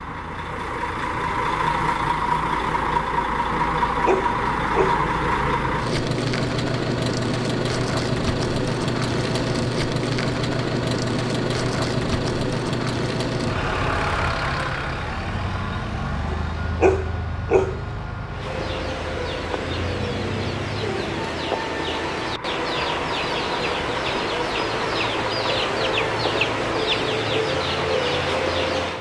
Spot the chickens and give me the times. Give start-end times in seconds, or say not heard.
18.2-28.9.